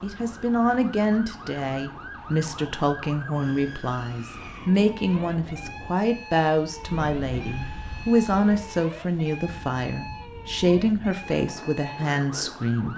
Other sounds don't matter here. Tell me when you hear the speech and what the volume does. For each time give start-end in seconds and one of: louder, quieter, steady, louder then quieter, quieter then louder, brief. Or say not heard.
0.0-12.9 steady.